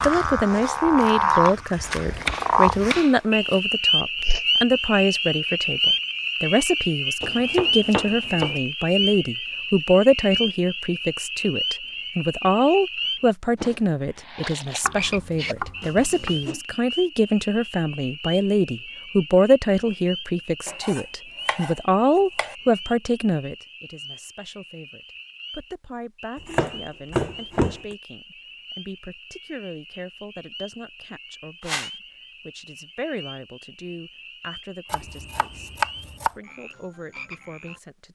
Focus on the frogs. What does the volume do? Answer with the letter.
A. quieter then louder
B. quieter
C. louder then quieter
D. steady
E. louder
B.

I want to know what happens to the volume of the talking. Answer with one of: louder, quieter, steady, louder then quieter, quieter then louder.
quieter.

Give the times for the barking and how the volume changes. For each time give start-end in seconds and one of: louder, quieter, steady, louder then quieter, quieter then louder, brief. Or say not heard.
not heard.